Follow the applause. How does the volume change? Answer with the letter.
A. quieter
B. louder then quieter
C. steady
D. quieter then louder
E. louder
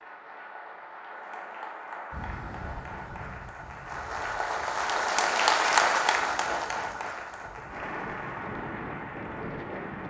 B.